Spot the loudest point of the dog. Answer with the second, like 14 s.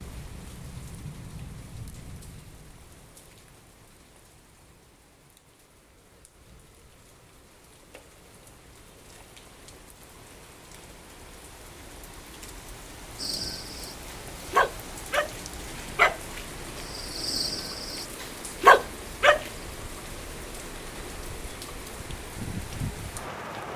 19 s.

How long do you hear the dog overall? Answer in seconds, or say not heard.
6 s.